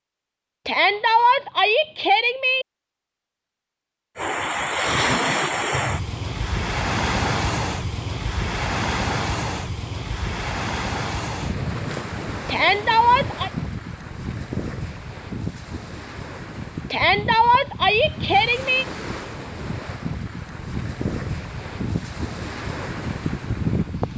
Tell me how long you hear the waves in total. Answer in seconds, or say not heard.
20 s.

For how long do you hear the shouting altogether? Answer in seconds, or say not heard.
5 s.